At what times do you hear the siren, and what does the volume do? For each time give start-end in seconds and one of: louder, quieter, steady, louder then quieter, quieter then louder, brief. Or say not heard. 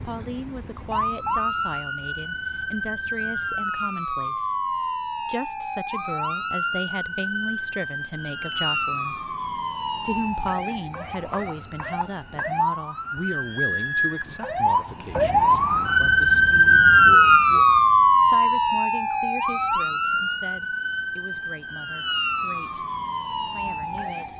0.0-24.3 louder then quieter.